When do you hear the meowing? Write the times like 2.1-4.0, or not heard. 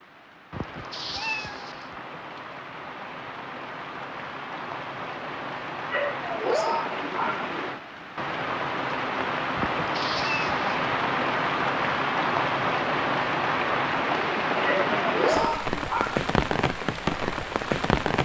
0.5-1.9, 9.6-10.7.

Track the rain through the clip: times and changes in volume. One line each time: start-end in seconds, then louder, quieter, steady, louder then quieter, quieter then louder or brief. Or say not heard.
0.0-18.2 louder.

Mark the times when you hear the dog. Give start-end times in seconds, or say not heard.
5.9-7.5, 14.7-16.1.